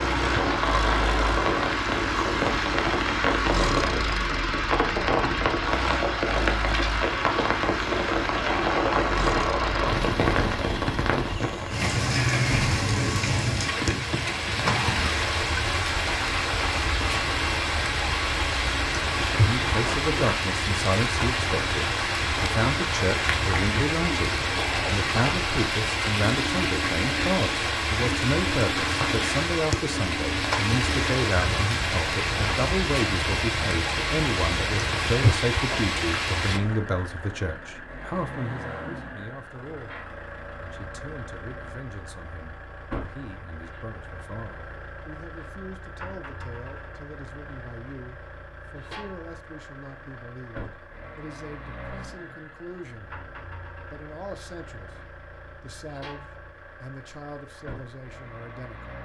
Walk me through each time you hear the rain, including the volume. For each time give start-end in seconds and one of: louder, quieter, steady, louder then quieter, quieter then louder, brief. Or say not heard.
0.0-36.6 steady.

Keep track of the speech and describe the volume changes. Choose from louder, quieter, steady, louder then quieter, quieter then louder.
quieter.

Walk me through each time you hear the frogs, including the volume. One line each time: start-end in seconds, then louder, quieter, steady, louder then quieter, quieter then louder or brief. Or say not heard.
not heard.